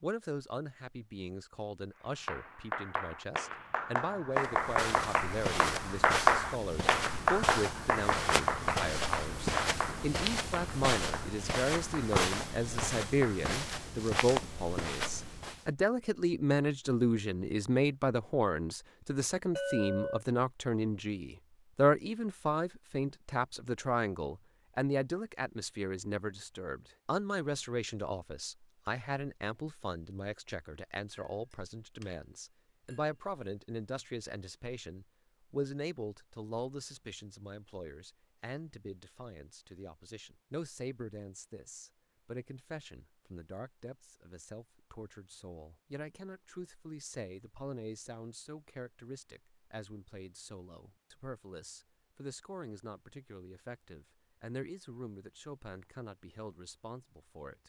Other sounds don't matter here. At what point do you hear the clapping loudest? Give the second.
6 s.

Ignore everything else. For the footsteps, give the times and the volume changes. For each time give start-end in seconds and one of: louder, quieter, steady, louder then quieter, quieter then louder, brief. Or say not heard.
4.3-15.7 steady.